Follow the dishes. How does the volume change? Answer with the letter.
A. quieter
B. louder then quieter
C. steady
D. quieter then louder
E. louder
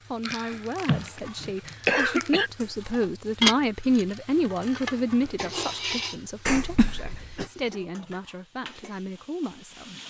B.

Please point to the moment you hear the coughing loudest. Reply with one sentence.
The loudest moment of the coughing is at 2 seconds.